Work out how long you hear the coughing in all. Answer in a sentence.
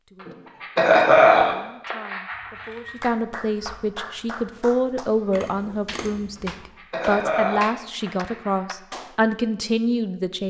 You can hear the coughing for 5 seconds altogether.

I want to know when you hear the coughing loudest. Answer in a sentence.
The loudest moment of the coughing is at 1 second.